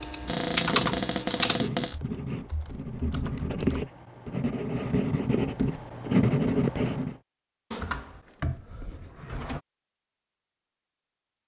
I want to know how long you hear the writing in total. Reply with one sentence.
You can hear the writing for 7 seconds altogether.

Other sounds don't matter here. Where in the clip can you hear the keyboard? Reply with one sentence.
You can hear the keyboard from 0.0 to 3.9 s.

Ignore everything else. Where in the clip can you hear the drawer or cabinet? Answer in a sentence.
The drawer or cabinet can be heard from 0.2 to 1.9 s and from 7.7 to 9.6 s.